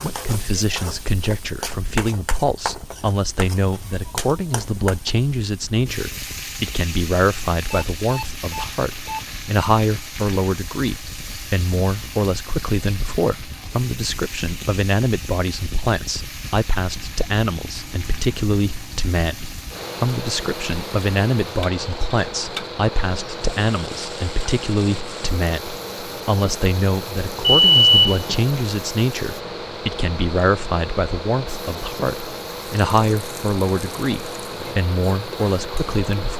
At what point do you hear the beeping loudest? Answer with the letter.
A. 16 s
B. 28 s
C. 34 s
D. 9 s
B.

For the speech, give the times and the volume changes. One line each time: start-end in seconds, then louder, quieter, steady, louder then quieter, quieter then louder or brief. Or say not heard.
0.0-36.3 steady.